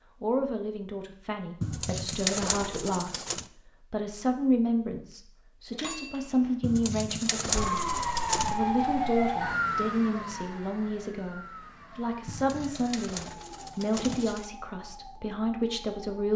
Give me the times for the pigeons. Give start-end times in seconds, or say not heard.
1.6-3.5, 6.6-8.6, 12.2-14.4.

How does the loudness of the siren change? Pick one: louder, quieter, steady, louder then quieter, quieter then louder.
quieter.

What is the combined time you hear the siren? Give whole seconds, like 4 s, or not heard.
9 s.